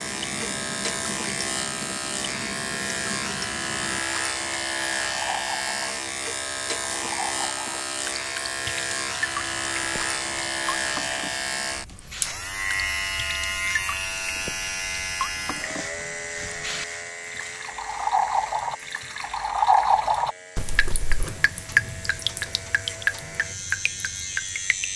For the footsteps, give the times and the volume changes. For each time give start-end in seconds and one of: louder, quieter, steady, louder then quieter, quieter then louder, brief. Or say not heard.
not heard.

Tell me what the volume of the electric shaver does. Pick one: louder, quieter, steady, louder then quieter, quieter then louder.
quieter.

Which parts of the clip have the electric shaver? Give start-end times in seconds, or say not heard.
0.0-24.9.